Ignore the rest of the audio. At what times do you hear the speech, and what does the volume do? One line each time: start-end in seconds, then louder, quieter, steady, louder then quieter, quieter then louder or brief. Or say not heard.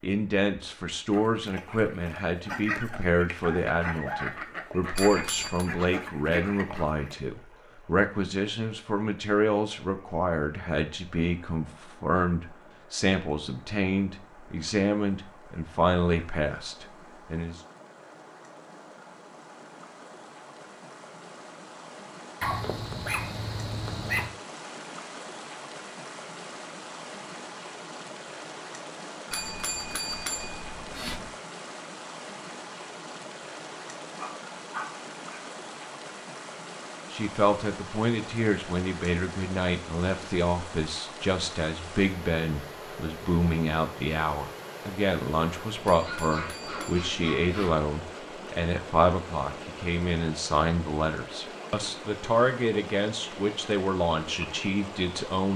0.0-17.6 steady
37.1-55.5 steady.